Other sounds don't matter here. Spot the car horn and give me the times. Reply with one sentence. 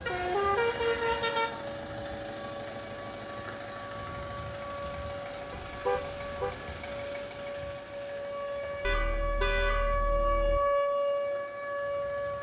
The car horn can be heard from 0.1 to 1.5 s, from 5.5 to 6.5 s and from 8.8 to 10.6 s.